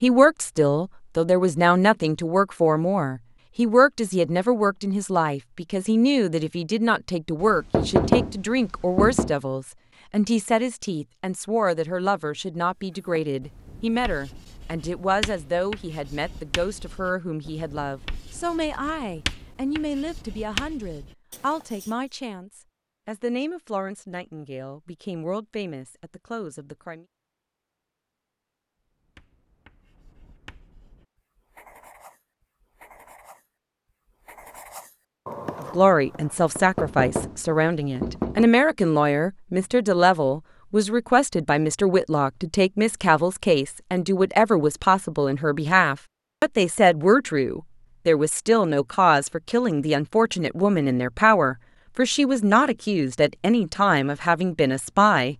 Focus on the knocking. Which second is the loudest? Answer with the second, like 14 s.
8 s.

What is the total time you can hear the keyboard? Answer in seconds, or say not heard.
not heard.